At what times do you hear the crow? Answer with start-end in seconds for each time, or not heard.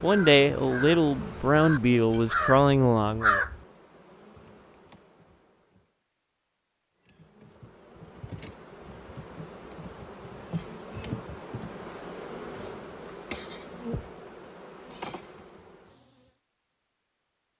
0.0-3.5.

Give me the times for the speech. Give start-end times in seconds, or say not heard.
0.0-3.4.